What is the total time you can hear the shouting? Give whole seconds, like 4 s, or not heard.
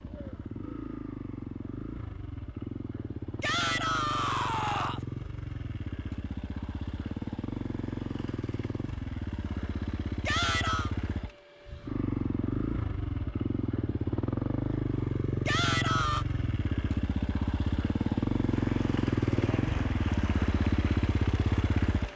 3 s.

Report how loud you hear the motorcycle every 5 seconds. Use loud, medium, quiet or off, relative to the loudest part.
medium, medium, loud, loud, loud.